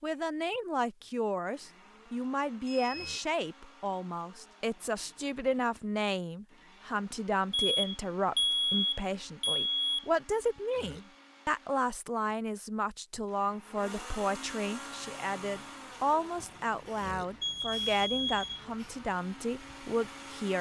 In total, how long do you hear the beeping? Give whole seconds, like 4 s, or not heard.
5 s.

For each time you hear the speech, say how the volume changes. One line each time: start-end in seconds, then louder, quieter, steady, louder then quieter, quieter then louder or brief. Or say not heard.
0.0-20.5 steady.